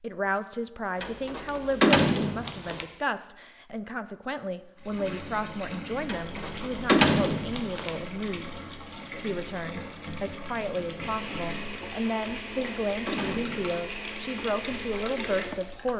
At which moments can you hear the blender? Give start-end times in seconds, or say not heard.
11.0-15.9.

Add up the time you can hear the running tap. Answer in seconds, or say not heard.
11 s.